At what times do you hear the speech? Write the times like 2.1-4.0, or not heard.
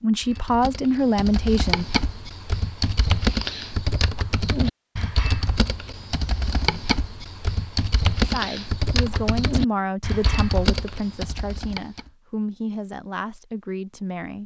0.0-1.9, 8.2-14.4.